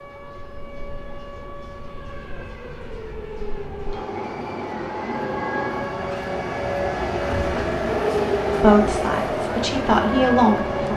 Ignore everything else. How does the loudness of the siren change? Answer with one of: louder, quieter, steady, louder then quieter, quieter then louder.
louder.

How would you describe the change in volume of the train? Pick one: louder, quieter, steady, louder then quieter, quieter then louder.
louder.